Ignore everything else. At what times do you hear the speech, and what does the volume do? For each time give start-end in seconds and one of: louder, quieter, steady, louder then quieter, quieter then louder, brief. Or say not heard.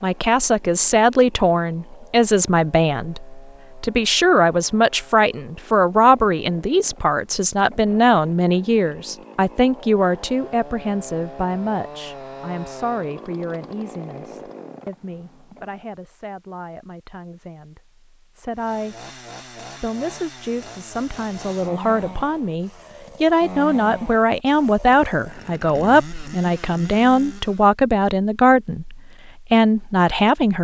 0.0-30.5 quieter then louder.